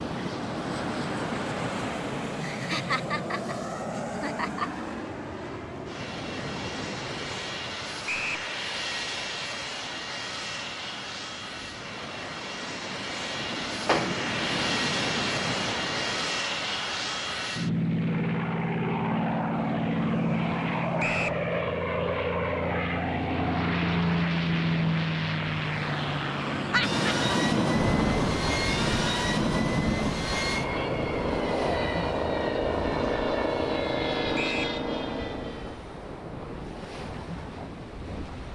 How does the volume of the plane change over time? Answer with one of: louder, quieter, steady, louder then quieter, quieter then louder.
louder.